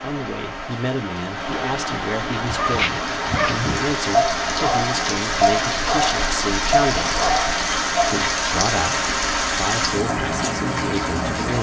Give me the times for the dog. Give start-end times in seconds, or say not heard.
2.4-8.2.